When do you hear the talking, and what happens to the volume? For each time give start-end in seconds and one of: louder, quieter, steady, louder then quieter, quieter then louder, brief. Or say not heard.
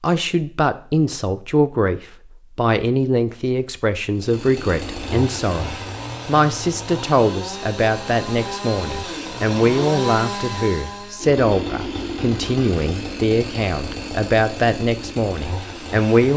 0.0-16.3 steady.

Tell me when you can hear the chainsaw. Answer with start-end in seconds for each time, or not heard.
4.2-16.3.